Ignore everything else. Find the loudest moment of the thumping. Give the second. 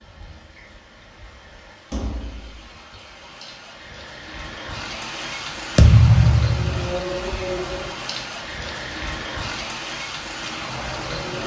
6 s.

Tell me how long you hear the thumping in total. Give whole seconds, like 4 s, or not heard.
2 s.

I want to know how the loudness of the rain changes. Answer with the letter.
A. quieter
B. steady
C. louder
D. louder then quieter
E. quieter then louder
C.